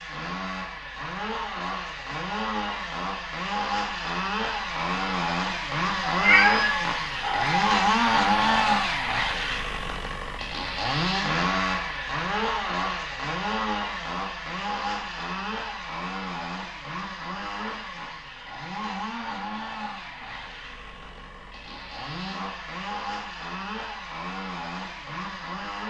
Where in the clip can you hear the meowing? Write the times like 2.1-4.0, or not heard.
6.0-7.7.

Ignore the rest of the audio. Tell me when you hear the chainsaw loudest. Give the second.
8 s.